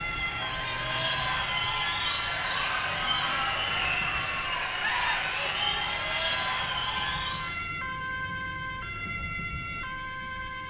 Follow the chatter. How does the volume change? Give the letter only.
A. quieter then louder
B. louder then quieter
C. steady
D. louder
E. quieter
C.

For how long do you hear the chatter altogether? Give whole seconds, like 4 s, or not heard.
8 s.